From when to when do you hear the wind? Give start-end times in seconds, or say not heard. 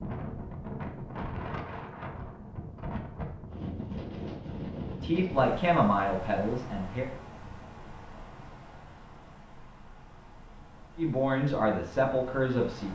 0.0-12.9.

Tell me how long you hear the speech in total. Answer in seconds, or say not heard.
4 s.